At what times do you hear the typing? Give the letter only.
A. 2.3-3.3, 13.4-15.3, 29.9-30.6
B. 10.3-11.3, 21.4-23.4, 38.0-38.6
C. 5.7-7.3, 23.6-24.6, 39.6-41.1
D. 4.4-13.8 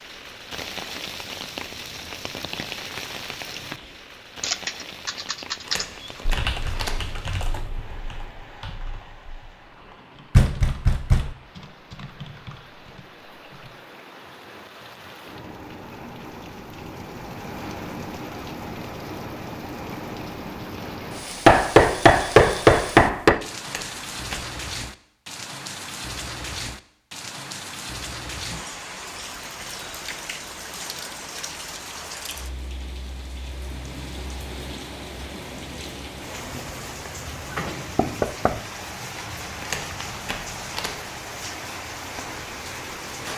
D.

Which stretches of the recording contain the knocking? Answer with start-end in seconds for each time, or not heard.
10.3-11.3, 21.4-23.4, 38.0-38.6.